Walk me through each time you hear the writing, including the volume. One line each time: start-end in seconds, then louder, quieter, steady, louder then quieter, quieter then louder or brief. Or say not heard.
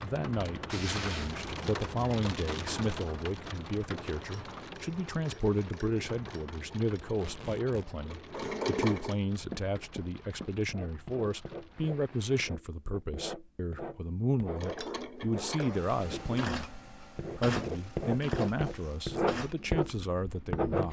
9.3-20.8 louder.